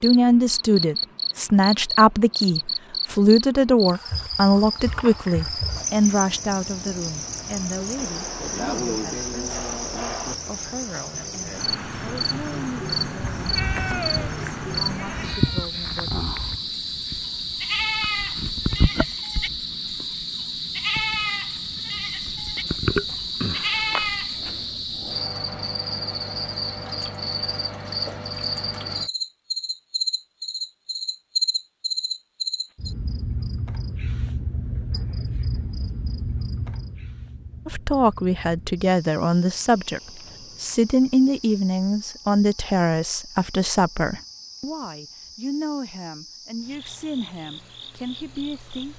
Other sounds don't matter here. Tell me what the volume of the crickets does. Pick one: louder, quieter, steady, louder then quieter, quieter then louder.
quieter.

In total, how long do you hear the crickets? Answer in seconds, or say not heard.
49 s.